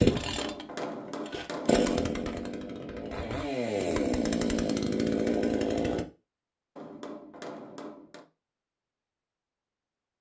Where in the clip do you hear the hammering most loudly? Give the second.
1 s.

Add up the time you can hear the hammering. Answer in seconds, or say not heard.
3 s.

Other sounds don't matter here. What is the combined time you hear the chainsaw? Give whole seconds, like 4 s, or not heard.
6 s.